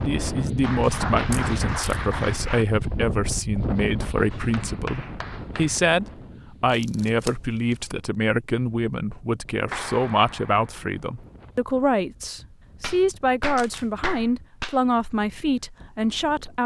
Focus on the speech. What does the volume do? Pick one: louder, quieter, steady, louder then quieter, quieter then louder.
steady.